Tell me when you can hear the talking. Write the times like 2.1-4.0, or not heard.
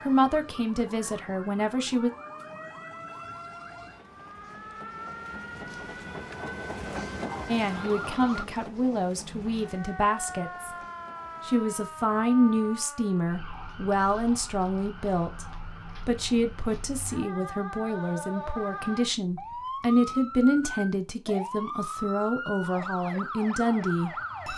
0.0-2.1, 7.5-10.7, 11.4-15.4, 16.1-24.1.